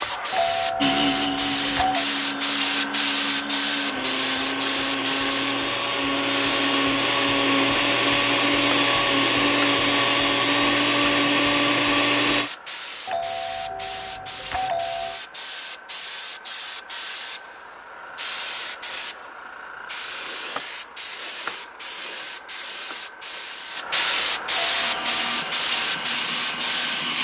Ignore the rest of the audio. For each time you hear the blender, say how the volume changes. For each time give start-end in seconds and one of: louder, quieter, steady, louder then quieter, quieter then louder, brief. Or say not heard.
0.0-12.5 louder
24.8-27.1 brief.